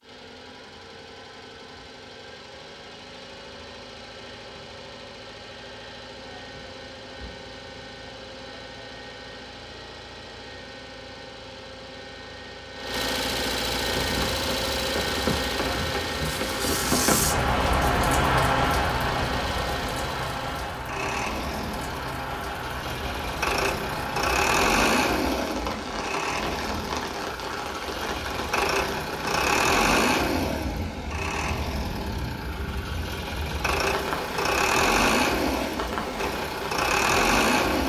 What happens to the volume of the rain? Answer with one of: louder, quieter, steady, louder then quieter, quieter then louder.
quieter.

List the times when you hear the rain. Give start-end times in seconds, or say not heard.
13.8-37.8.